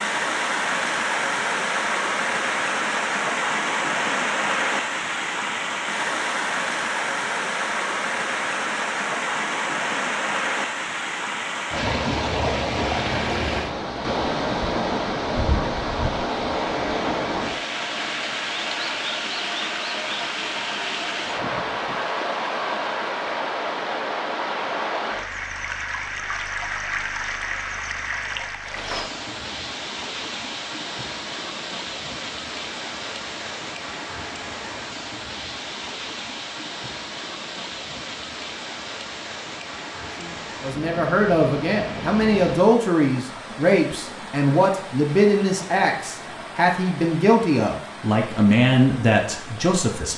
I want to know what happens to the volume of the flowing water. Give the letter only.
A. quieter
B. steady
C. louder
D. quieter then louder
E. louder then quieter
A.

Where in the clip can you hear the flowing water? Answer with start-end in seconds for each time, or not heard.
0.0-50.1.